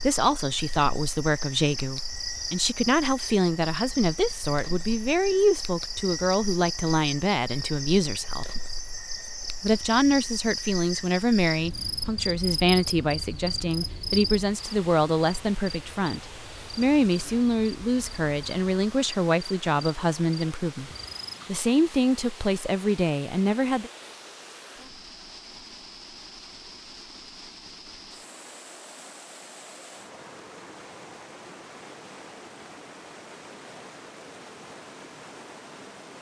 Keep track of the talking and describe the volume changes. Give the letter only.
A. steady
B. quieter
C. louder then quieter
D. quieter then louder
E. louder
A.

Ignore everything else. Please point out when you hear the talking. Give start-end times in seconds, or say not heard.
0.0-8.5, 9.6-23.9.